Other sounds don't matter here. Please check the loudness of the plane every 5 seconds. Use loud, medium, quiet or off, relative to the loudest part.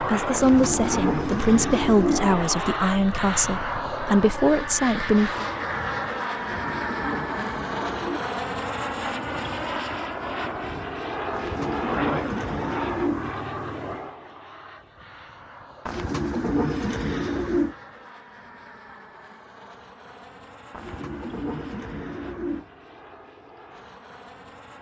loud, loud, loud, quiet, quiet.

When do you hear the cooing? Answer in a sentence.
The cooing can be heard from 0.3 to 2.4 s, from 6.3 to 8.2 s, from 11.3 to 13.3 s, from 15.8 to 17.8 s and from 20.7 to 22.6 s.